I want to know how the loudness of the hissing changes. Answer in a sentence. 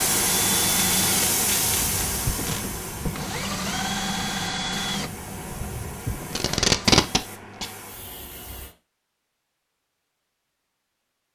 The volume of the hissing goes down.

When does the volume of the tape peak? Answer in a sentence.
The volume of the tape peaks at 7 seconds.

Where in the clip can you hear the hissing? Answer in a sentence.
The hissing can be heard from 0.0 to 8.8 s.